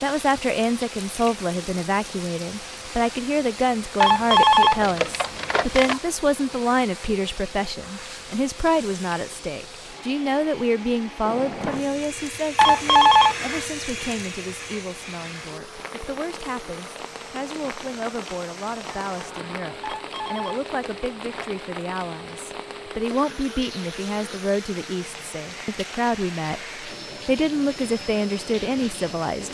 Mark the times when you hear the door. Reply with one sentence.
The door can be heard from 11.2 to 12.1 s and from 18.9 to 19.6 s.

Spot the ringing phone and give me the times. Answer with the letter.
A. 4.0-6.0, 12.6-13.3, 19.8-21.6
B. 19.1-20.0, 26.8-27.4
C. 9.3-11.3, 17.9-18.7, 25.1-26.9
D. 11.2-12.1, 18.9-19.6
A.